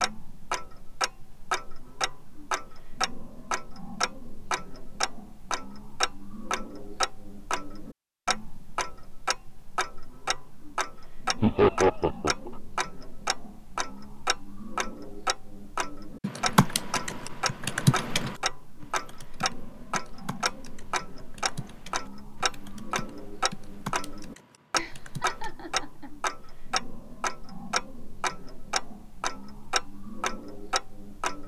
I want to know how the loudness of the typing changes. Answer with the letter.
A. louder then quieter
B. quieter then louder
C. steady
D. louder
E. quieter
B.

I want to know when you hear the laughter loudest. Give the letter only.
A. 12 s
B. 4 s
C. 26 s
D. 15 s
A.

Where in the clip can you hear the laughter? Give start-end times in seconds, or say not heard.
11.4-12.5, 24.8-26.1.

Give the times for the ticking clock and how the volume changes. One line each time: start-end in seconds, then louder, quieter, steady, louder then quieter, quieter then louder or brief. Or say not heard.
0.0-31.4 steady.